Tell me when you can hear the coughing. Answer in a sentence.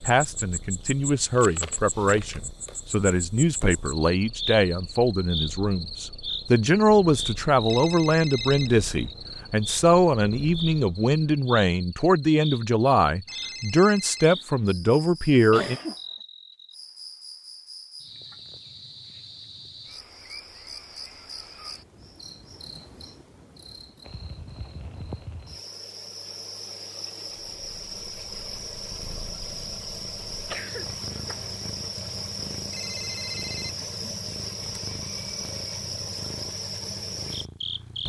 The coughing can be heard from 15.5 to 15.9 s and from 30.4 to 31.6 s.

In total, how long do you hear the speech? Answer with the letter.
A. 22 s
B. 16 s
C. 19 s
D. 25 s
B.